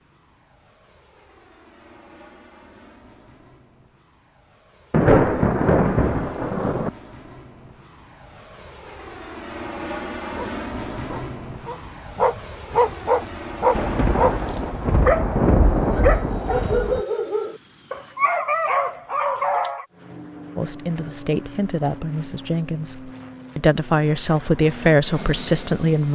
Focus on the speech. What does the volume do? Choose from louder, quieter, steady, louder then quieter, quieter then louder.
louder.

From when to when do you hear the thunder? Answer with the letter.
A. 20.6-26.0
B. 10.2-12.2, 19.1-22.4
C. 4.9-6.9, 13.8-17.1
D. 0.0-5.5
C.